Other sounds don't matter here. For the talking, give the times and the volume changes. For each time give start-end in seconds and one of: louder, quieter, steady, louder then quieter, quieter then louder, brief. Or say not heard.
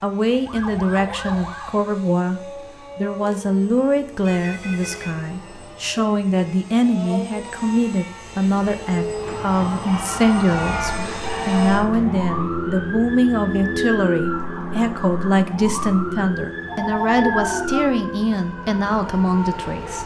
0.0-20.0 steady.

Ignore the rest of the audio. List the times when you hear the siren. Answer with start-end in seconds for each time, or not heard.
0.2-1.9, 9.1-20.0.